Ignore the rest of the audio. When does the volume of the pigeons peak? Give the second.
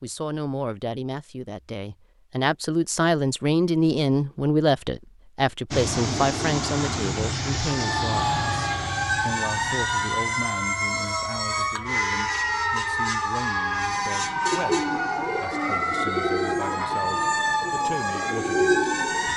19 s.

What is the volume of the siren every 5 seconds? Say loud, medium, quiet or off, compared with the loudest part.
off, loud, loud, loud.